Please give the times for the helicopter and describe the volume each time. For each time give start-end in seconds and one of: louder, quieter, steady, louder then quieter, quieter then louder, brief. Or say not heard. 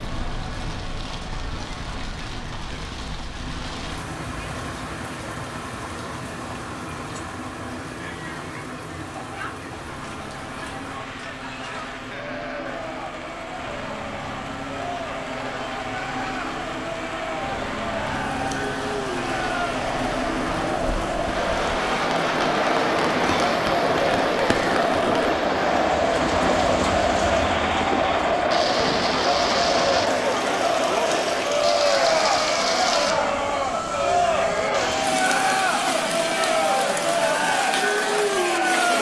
0.0-38.9 louder then quieter.